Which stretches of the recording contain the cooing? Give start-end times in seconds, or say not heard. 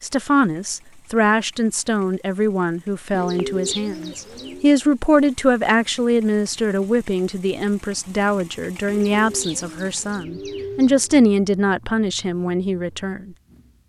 3.1-4.7, 8.8-10.9.